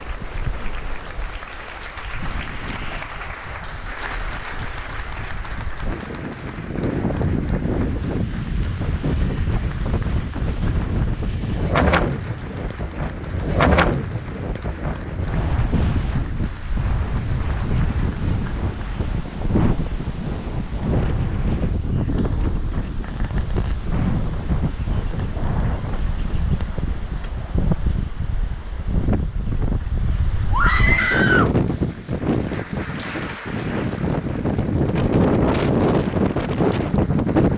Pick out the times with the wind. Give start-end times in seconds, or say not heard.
0.0-37.5.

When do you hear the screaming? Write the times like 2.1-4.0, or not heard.
30.5-31.5.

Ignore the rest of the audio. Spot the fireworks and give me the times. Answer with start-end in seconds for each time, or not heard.
not heard.